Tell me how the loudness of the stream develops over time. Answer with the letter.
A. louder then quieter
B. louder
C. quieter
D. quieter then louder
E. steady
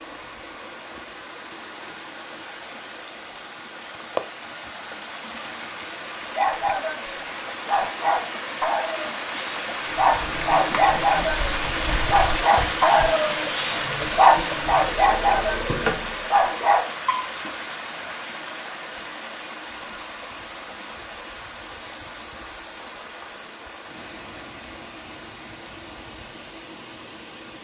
A.